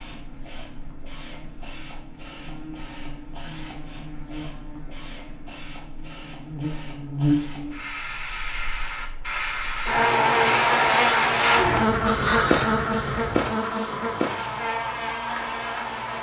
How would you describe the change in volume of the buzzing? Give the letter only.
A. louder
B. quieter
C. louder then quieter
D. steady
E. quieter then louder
C.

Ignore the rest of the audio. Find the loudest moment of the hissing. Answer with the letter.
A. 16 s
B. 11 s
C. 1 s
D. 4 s
B.